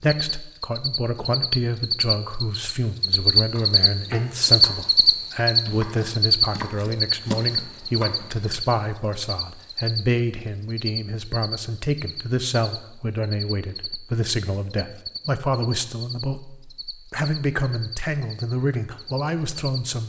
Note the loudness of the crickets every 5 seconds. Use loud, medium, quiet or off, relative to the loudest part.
loud, loud, quiet, quiet.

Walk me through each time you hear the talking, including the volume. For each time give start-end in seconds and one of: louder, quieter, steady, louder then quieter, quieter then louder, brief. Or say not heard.
0.0-20.0 steady.